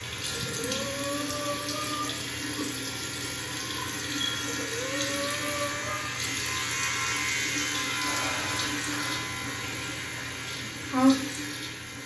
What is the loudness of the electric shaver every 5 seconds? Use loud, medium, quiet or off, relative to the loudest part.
medium, loud, medium.